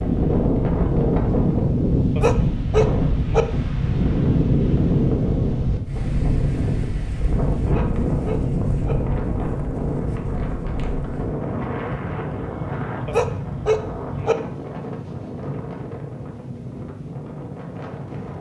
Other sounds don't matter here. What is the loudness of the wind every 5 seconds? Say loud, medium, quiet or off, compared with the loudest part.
loud, loud, medium, quiet.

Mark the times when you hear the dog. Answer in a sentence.
The dog can be heard from 2.1 to 3.5 s, from 7.7 to 8.9 s and from 13.1 to 14.3 s.